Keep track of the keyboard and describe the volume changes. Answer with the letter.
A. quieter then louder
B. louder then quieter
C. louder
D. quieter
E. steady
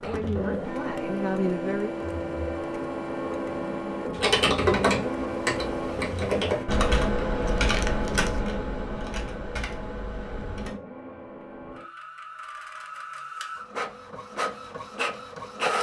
D.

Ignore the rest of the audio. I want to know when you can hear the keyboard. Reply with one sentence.
You can hear the keyboard from 4.1 to 10.8 s.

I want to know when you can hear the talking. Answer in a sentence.
The talking can be heard from 0.0 to 1.9 s.